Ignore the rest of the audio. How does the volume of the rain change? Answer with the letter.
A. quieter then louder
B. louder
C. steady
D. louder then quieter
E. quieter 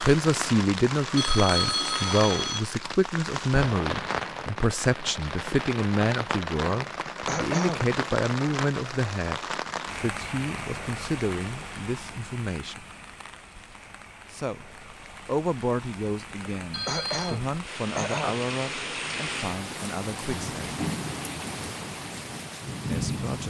A.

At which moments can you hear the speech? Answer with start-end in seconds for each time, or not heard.
0.0-12.8, 14.3-20.8, 22.9-23.4.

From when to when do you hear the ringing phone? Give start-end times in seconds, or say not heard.
1.1-2.6, 16.7-17.4.